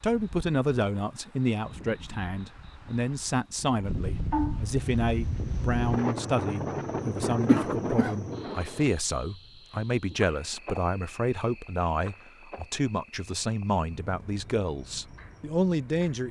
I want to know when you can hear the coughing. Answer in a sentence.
The coughing can be heard from 7.5 to 8.2 s.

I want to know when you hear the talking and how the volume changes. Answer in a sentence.
You can hear the talking from 0.0 to 16.2 s, at a steady volume.